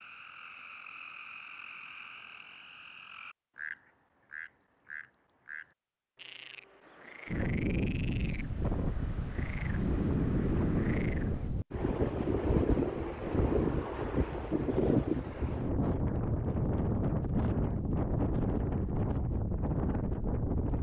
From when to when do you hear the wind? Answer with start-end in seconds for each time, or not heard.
7.2-20.7.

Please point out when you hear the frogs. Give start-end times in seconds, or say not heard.
0.0-11.5.